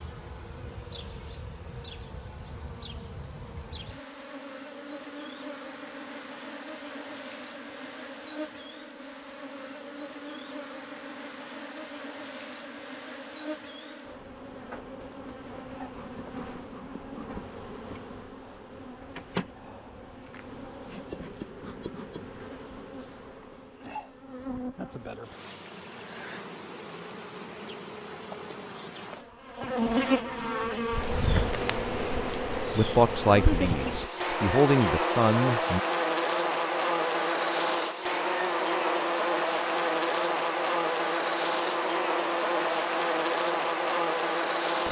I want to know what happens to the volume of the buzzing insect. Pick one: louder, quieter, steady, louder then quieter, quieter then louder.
louder.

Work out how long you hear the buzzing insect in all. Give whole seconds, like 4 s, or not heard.
45 s.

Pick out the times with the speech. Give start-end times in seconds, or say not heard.
32.8-35.8.